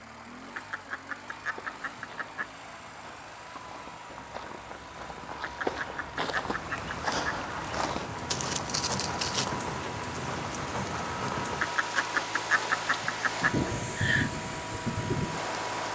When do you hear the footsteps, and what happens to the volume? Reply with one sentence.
You can hear the footsteps from 1.4 to 9.6 s, getting louder.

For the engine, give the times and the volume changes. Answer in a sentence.
The engine can be heard from 0.0 to 15.9 s, getting louder.